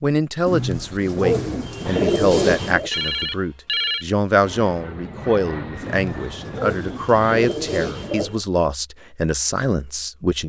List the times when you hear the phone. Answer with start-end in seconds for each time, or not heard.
2.9-4.0.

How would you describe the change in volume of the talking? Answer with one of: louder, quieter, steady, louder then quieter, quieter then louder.
steady.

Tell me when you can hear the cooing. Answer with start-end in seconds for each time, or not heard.
0.5-2.9, 5.8-8.4.